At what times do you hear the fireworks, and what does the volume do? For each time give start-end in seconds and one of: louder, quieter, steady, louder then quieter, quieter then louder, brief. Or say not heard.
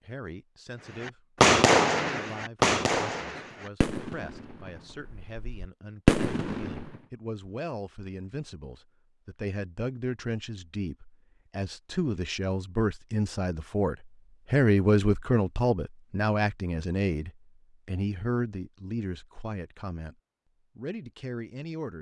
1.0-7.0 quieter then louder.